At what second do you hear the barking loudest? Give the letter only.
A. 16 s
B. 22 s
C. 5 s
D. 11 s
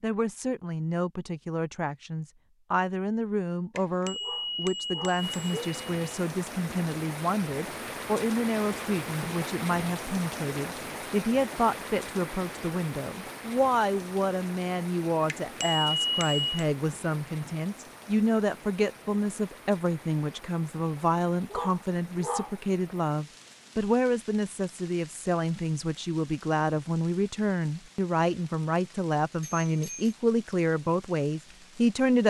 B.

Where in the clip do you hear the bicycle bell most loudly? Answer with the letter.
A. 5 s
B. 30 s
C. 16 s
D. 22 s
C.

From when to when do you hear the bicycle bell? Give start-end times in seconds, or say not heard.
3.8-6.0, 15.2-16.6, 29.4-30.1.